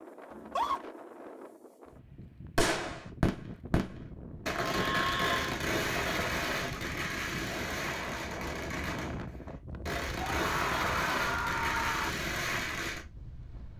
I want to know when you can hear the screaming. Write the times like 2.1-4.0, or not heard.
0.3-0.8, 4.6-5.5, 10.2-12.1.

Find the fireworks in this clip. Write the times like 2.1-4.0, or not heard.
2.5-13.1.